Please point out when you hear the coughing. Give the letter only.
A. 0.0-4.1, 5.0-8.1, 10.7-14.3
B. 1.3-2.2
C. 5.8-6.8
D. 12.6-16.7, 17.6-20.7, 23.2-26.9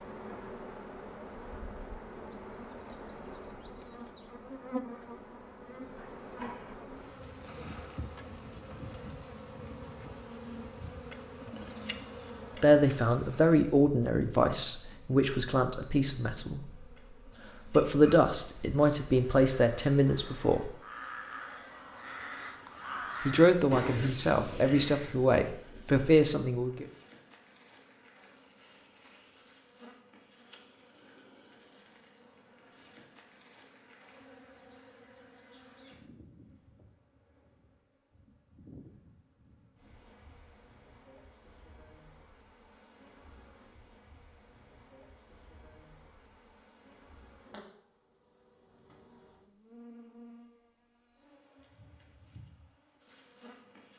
C.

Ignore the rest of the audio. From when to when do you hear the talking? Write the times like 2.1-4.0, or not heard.
12.6-16.7, 17.6-20.7, 23.2-26.9.